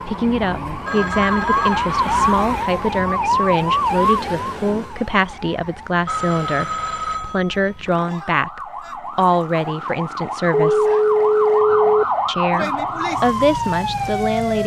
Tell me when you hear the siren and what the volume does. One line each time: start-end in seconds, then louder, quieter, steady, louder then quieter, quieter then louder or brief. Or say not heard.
0.0-14.6 quieter then louder.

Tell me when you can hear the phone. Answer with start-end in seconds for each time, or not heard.
0.8-1.9, 6.0-7.8, 10.7-12.1.